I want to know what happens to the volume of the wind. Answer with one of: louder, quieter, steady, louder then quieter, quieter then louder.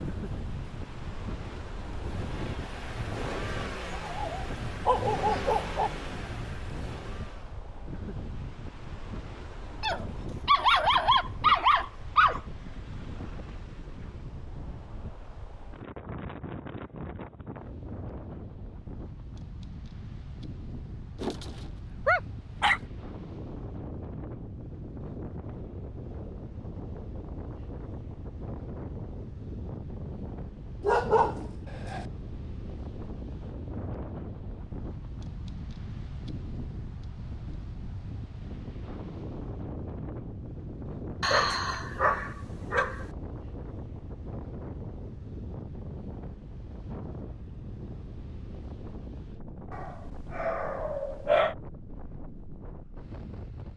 steady.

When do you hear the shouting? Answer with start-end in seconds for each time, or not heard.
not heard.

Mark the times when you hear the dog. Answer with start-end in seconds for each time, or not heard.
3.9-5.9, 9.8-12.4, 21.2-22.8, 30.8-32.0, 41.2-43.0, 49.7-51.5.